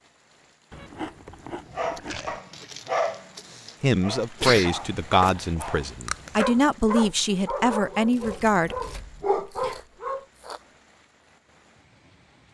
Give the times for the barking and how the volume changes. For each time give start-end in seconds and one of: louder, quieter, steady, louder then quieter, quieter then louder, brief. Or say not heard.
1.7-10.2 quieter then louder.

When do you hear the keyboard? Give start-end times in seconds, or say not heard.
not heard.